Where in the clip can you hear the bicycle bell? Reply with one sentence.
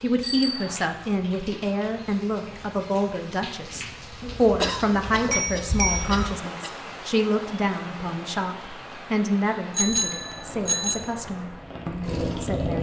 You can hear the bicycle bell from 0.2 to 0.8 s, from 4.3 to 6.3 s and from 9.8 to 11.1 s.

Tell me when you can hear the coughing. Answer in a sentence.
The coughing can be heard from 4.6 to 6.8 s.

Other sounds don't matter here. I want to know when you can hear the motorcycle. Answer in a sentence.
The motorcycle can be heard from 10.1 to 12.7 s.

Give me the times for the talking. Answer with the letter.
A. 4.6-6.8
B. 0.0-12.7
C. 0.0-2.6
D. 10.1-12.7
B.